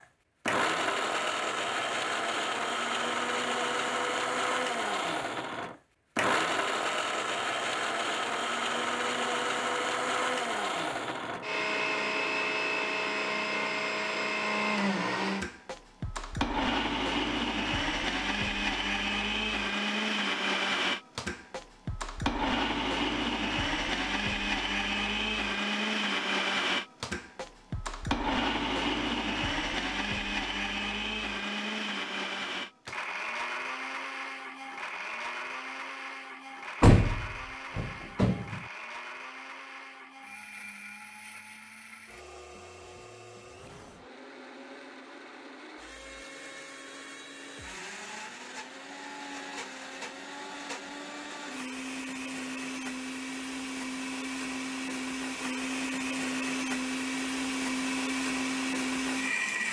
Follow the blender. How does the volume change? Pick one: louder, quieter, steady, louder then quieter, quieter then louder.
quieter then louder.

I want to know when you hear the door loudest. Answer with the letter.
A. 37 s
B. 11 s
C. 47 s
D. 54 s
A.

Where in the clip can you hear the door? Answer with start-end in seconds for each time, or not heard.
36.8-38.6.